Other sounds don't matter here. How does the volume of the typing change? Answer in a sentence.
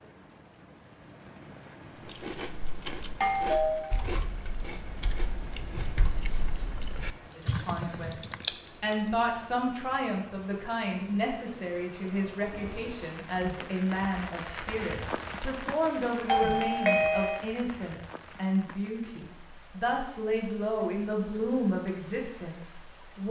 The volume of the typing goes up.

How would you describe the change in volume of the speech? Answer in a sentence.
The volume of the speech stays about the same.